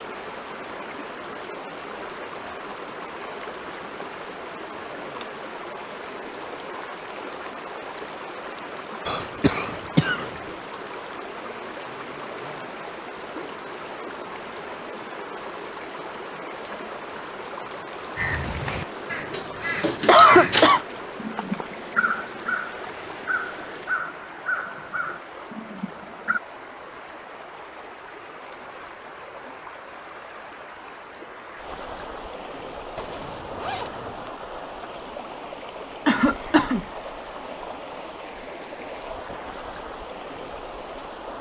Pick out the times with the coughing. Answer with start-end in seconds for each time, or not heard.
9.1-10.3, 20.1-20.8, 36.0-36.9.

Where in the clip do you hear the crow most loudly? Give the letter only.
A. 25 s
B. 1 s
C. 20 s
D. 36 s
C.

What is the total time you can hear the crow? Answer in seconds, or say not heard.
8 s.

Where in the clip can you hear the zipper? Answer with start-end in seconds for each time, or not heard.
33.0-34.3.